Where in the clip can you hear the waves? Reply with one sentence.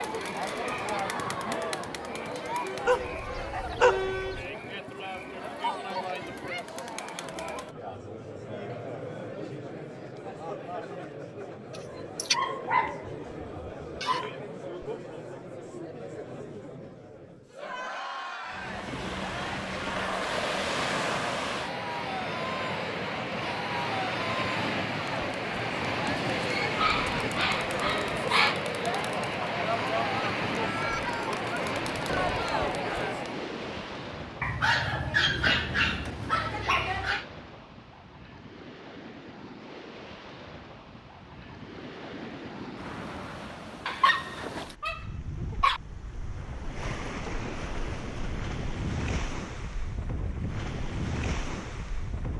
You can hear the waves from 18.5 to 52.3 s.